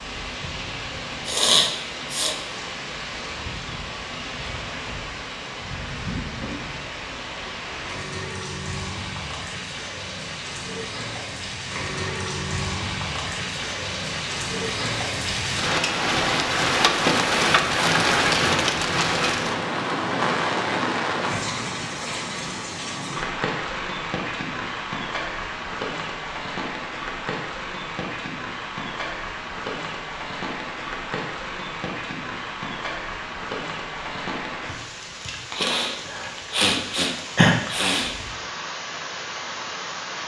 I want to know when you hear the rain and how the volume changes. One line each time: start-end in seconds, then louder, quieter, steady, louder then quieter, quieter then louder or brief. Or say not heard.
0.0-40.2 louder then quieter.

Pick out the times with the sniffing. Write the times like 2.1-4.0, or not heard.
1.2-2.4, 35.5-38.1.